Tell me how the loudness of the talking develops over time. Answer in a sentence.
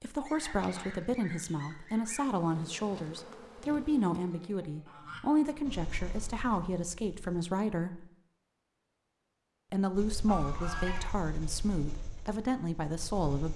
The volume of the talking stays about the same.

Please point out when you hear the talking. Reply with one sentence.
The talking can be heard from 0.0 to 8.1 s and from 9.7 to 13.5 s.